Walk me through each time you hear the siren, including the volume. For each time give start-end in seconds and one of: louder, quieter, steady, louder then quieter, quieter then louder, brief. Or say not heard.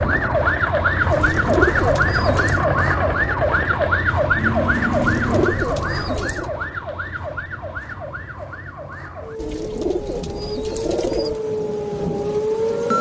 0.0-12.9 quieter then louder.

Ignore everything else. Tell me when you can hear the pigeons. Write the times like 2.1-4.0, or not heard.
1.1-2.6, 4.9-6.5, 9.3-11.4.